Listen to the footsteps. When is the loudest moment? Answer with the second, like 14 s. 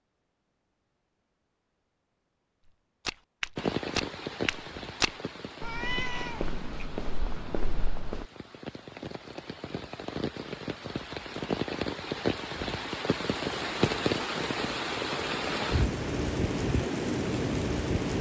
5 s.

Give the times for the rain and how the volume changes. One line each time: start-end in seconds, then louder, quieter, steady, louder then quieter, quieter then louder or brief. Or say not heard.
3.5-18.1 quieter then louder.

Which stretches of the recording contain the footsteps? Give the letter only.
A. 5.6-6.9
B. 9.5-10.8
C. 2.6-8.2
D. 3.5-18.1
C.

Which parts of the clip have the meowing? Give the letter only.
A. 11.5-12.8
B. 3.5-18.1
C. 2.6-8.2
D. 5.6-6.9
D.